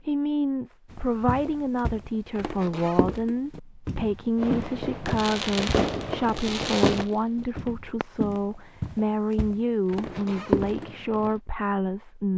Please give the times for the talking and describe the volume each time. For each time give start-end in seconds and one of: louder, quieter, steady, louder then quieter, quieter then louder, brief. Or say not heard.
0.0-12.3 steady.